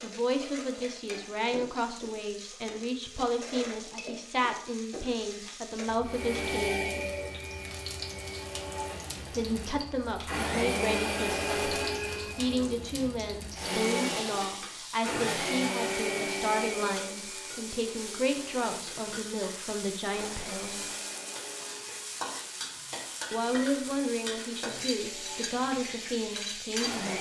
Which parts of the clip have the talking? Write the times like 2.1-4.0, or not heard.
0.0-6.8, 9.3-20.9, 23.3-27.1.